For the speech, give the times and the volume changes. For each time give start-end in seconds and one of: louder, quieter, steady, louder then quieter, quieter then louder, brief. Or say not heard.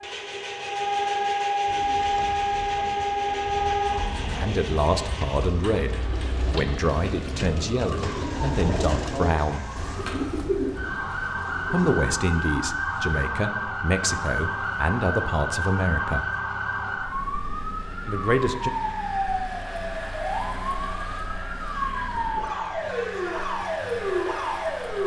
4.2-9.7 steady
11.7-16.2 steady
18.1-18.7 brief.